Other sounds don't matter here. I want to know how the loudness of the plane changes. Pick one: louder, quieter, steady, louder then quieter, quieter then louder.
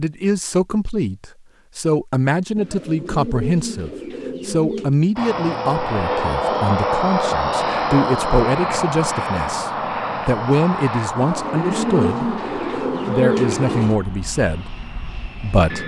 quieter.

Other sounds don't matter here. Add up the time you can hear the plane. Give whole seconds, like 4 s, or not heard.
11 s.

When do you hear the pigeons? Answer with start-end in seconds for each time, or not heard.
2.5-5.0, 11.2-13.9.